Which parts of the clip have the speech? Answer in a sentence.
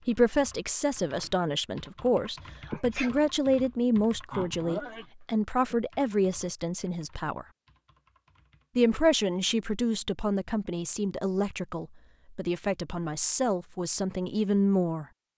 The speech can be heard from 0.1 to 7.5 s and from 8.8 to 15.1 s.